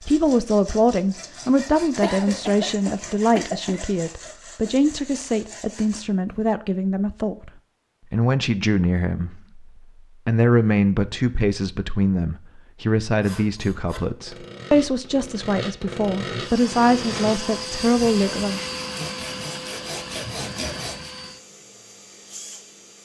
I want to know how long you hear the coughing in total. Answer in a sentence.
The coughing can be heard for 2 seconds in total.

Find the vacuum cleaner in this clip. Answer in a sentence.
You can hear the vacuum cleaner from 16.4 to 23.0 s.